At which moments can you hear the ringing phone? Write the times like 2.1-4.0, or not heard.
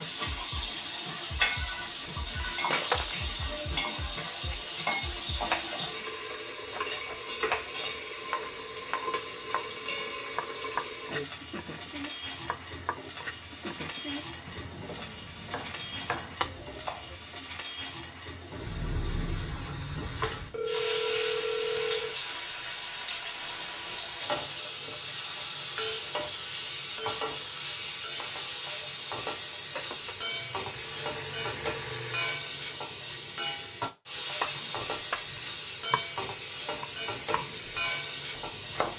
1.6-2.8, 20.3-22.1, 29.7-32.5.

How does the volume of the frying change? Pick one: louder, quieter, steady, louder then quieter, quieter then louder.
steady.